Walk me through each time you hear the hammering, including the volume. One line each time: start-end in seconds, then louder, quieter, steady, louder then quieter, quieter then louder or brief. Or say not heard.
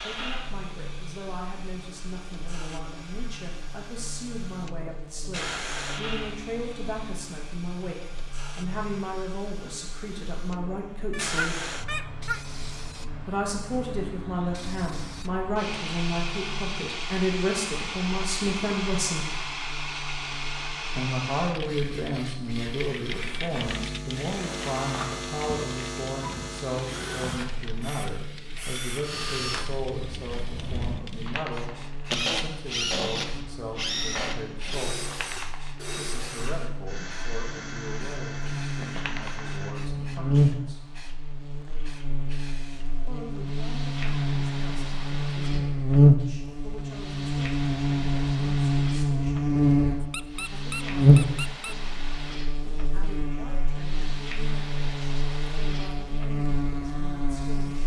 not heard.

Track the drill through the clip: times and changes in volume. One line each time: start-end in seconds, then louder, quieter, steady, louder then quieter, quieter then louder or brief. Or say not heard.
23.1-39.8 louder then quieter.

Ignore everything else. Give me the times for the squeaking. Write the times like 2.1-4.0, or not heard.
11.1-12.4, 50.1-51.8.